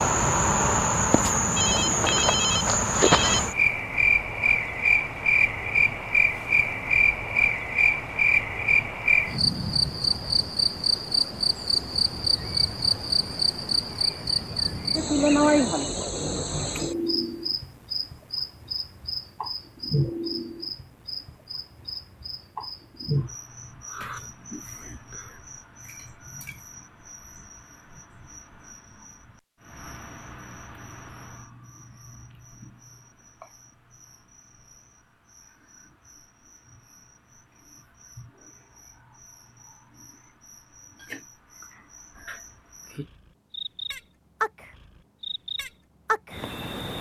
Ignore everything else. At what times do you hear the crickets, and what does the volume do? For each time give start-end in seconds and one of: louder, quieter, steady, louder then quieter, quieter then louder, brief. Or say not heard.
0.0-46.9 quieter then louder.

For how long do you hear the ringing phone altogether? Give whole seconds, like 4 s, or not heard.
2 s.